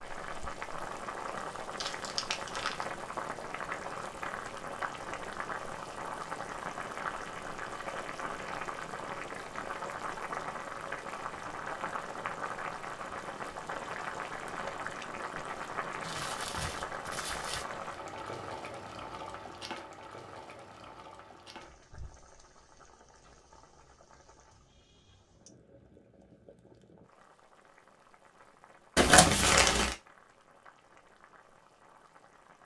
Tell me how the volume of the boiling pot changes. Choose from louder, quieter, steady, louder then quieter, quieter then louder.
quieter.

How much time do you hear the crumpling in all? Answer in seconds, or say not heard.
4 s.